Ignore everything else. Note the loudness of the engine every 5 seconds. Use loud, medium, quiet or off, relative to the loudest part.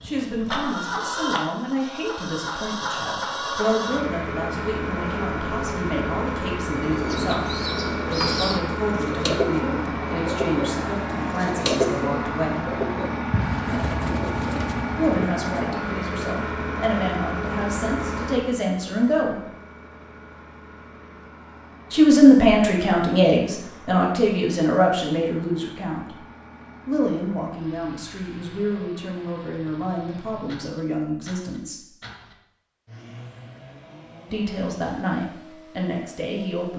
loud, loud, loud, loud, quiet, quiet, quiet, quiet.